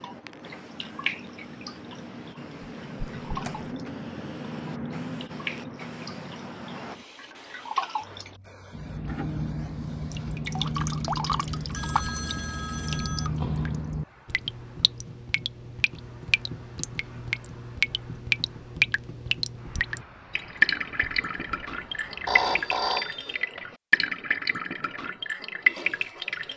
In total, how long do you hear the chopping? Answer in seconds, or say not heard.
not heard.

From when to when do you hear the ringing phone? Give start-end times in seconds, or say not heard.
2.8-3.7, 11.8-13.3, 22.2-23.4.